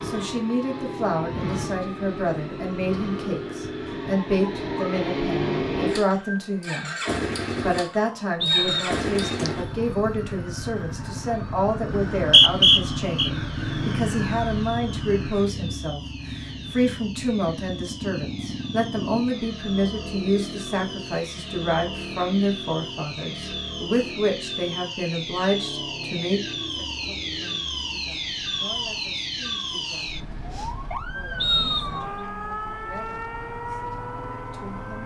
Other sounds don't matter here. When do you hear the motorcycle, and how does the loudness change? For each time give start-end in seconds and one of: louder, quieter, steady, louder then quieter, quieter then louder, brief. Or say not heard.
0.0-35.0 quieter.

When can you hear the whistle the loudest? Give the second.
13 s.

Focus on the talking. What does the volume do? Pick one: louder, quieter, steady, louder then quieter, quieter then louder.
quieter.